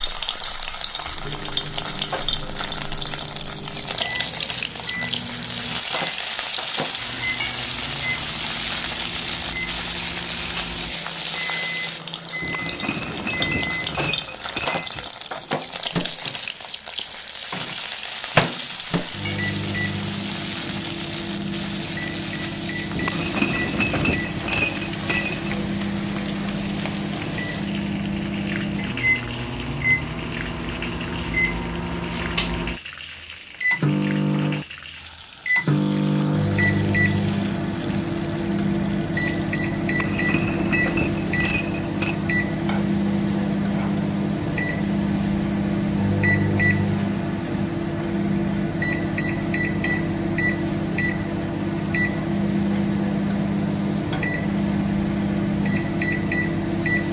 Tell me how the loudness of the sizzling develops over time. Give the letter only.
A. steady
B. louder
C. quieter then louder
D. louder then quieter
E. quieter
E.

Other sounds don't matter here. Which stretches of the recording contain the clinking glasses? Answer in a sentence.
The clinking glasses can be heard from 12.4 to 15.1 s, from 22.9 to 25.7 s and from 39.9 to 42.1 s.